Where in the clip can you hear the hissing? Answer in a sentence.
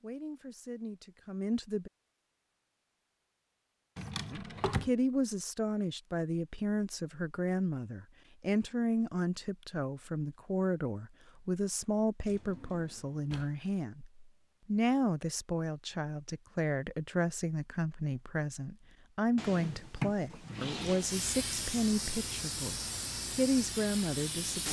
The hissing can be heard from 20.9 to 24.6 s.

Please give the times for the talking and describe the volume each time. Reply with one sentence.
You can hear the talking briefly from 0.0 to 1.9 s; from 4.3 to 14.1 s, at a steady volume; and from 14.7 to 24.6 s, at a steady volume.